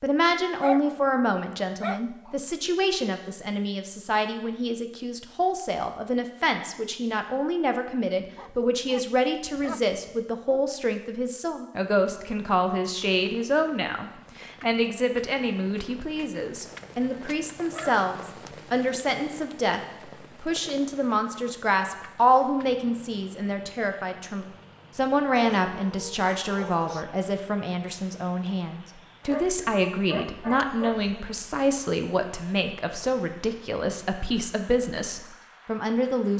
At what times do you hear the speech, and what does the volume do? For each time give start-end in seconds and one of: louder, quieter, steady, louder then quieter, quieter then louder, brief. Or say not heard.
0.0-36.3 steady.